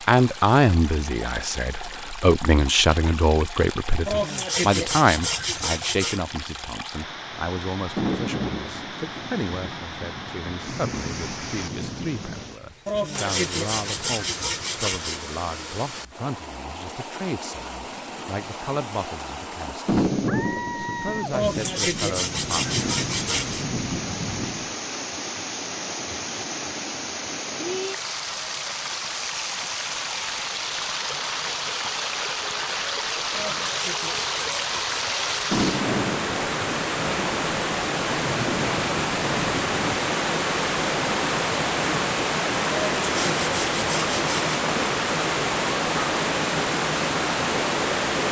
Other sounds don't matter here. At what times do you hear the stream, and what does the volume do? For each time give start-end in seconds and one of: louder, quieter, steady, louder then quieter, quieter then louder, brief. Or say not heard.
0.0-48.2 louder.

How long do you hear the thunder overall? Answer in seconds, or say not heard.
14 s.